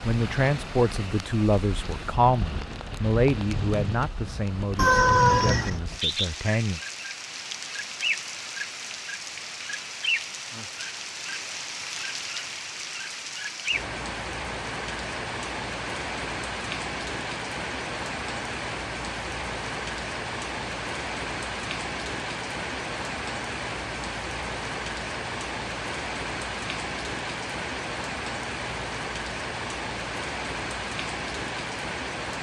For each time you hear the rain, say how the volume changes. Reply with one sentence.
You can hear the rain from 0.0 to 32.3 s, at a steady volume.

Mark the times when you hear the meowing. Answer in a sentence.
The meowing can be heard from 4.8 to 5.8 s.